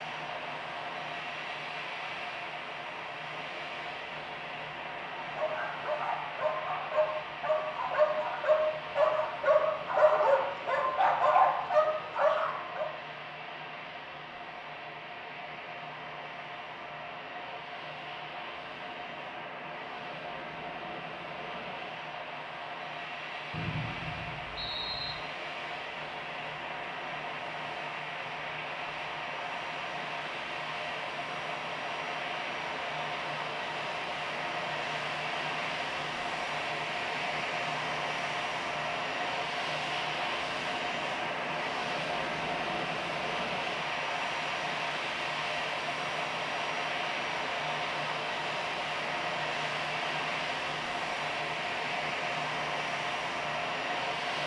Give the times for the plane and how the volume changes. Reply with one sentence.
You can hear the plane from 0.0 to 54.4 s, getting louder.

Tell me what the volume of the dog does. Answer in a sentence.
The volume of the dog goes up.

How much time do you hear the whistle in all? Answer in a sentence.
You can hear the whistle for 2 seconds altogether.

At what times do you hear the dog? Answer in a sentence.
The dog can be heard from 5.2 to 12.9 s.